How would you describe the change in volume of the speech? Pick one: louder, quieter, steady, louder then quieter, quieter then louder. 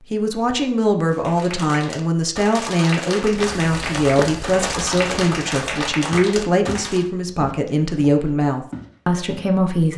steady.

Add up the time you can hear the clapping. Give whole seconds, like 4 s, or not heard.
6 s.